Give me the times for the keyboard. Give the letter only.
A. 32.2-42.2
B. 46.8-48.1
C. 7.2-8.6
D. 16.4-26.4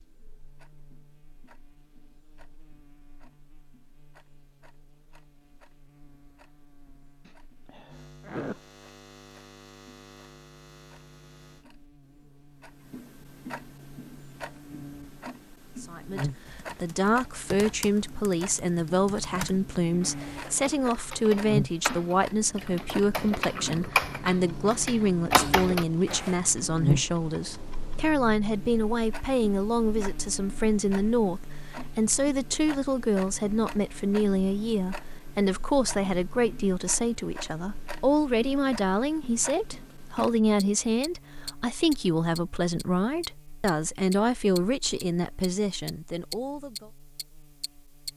D.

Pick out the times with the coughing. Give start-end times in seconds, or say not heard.
7.2-8.6.